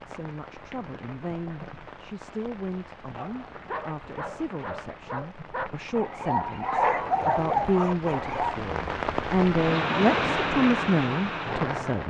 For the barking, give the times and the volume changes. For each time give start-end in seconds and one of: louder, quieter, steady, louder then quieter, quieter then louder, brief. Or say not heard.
3.1-8.6 louder.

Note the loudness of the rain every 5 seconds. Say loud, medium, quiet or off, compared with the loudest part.
quiet, medium, loud.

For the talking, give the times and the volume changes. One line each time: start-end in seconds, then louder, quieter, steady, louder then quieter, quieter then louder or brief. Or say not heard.
0.1-12.0 louder.